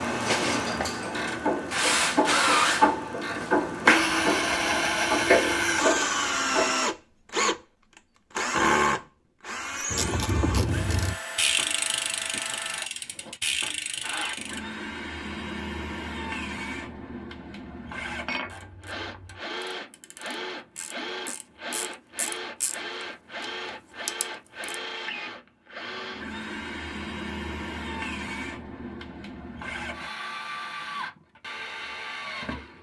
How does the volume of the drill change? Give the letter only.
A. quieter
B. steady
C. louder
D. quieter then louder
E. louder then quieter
A.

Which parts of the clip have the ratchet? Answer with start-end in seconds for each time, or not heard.
0.4-6.8, 9.9-14.6, 18.4-22.8, 23.4-24.8.